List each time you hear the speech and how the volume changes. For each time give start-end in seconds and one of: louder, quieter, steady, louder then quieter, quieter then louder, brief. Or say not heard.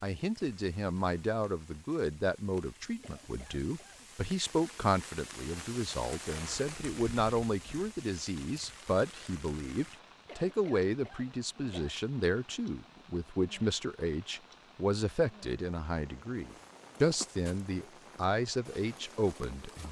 0.0-19.8 steady.